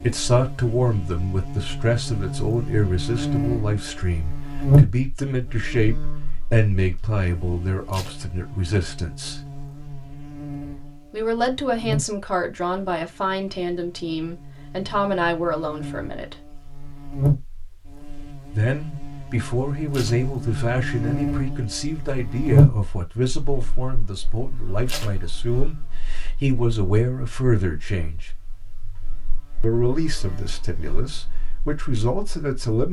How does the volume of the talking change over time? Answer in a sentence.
The loudness of the talking stays about the same.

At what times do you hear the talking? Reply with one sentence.
You can hear the talking from 0.0 to 9.4 s, from 11.1 to 16.4 s, from 18.5 to 28.3 s and from 29.6 to 32.8 s.